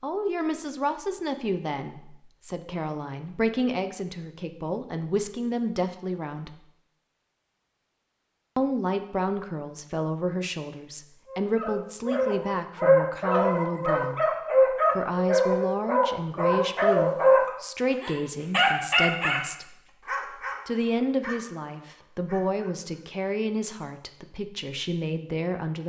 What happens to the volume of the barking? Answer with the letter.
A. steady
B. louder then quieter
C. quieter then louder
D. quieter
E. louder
D.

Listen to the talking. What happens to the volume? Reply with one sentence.
The loudness of the talking stays about the same.